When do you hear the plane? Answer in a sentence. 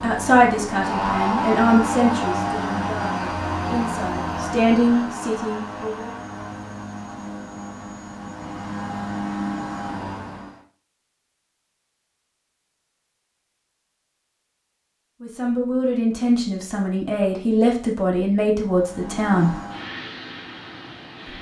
You can hear the plane from 0.0 to 10.6 s and from 18.6 to 21.3 s.